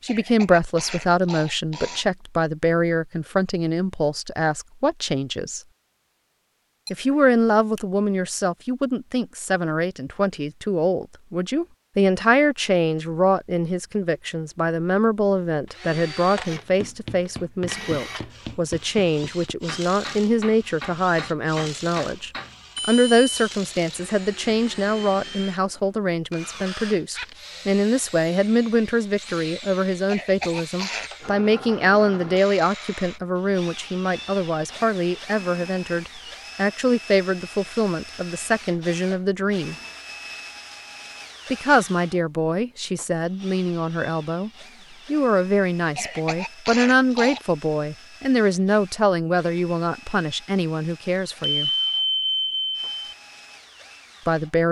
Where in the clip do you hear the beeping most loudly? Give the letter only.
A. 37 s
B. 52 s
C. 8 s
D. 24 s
B.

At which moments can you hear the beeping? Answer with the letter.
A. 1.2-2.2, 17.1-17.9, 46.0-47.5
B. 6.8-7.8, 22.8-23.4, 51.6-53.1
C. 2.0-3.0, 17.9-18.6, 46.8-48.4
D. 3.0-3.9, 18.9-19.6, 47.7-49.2
B.